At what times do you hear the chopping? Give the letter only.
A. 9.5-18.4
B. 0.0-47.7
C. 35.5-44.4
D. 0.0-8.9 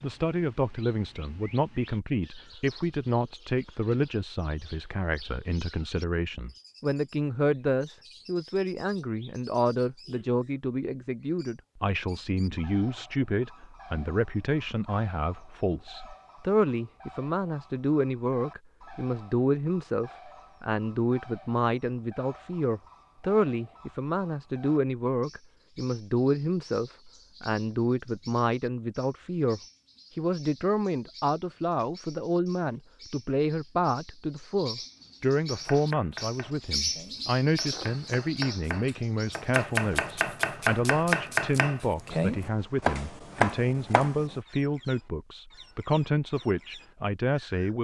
C.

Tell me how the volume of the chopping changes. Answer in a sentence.
The loudness of the chopping goes up.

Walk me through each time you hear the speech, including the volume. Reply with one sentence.
The speech can be heard from 0.0 to 47.7 s, at a steady volume.